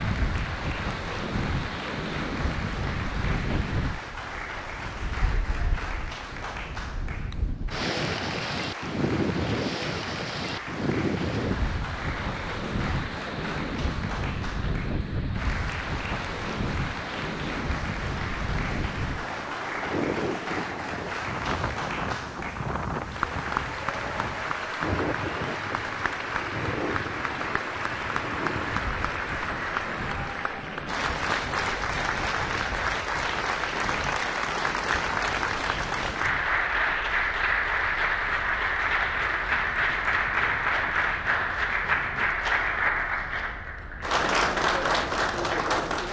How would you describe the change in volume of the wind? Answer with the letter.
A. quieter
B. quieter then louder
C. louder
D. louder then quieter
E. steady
A.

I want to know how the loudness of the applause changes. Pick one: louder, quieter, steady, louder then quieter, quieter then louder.
louder.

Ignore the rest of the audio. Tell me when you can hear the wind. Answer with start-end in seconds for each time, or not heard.
0.0-46.0.